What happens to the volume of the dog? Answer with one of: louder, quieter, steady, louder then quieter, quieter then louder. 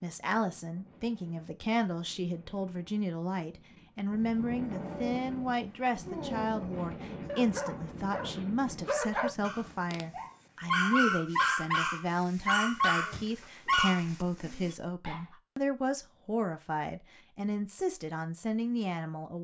louder.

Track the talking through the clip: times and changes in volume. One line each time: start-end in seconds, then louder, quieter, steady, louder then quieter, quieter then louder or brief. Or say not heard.
0.0-19.3 steady.